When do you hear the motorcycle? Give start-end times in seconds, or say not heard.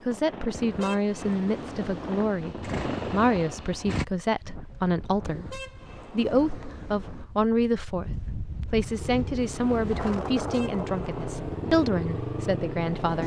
2.4-4.0, 8.9-13.2.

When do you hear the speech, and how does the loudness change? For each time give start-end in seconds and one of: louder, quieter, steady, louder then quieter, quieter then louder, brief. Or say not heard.
0.1-13.2 steady.